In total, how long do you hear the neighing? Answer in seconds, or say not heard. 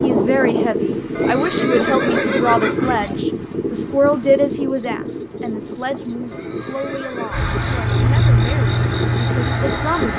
3 s.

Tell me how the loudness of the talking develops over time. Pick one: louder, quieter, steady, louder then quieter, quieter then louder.
quieter.